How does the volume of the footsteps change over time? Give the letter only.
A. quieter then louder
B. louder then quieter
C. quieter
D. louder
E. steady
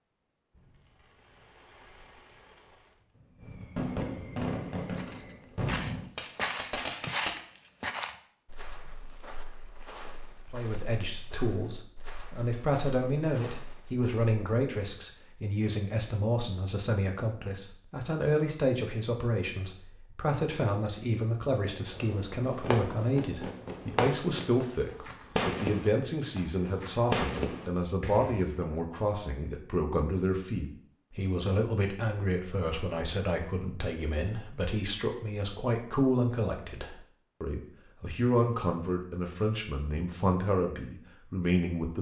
C.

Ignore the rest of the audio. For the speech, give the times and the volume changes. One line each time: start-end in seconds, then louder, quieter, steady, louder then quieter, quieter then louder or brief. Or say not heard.
10.5-41.9 steady.